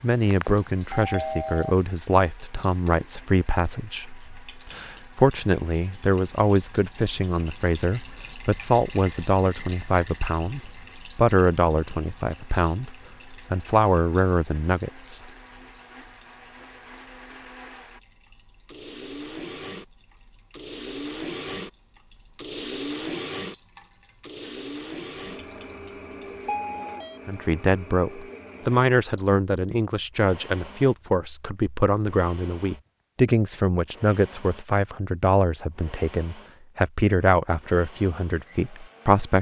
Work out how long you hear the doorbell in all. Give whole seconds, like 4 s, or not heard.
2 s.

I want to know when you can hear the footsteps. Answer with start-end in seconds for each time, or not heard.
not heard.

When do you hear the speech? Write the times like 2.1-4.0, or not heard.
0.0-15.2, 27.2-39.3.